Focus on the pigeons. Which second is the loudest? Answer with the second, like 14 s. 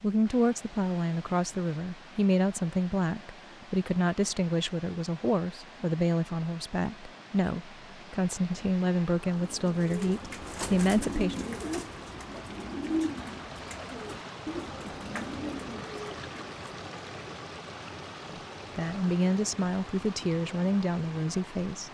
13 s.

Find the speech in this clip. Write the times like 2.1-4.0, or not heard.
0.0-11.4, 18.3-21.8.